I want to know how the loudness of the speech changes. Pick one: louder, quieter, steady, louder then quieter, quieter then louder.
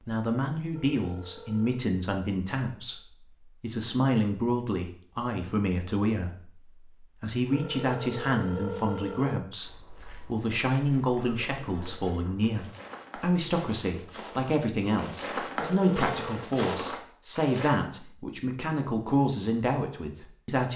steady.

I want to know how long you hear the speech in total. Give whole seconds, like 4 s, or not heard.
21 s.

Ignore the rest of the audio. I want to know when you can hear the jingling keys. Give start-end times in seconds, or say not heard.
not heard.